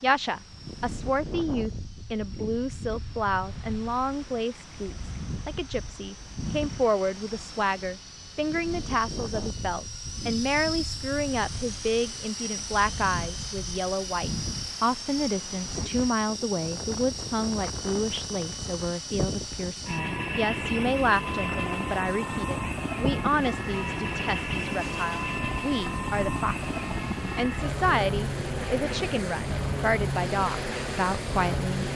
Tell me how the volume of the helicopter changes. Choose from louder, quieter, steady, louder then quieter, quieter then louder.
louder.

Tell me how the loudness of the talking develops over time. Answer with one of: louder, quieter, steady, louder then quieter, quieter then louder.
steady.